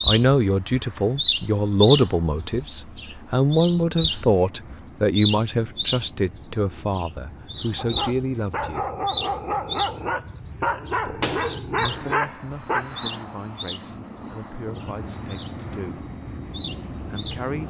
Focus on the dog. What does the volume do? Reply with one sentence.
The volume of the dog stays about the same.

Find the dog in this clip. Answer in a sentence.
You can hear the dog from 7.8 to 12.9 s.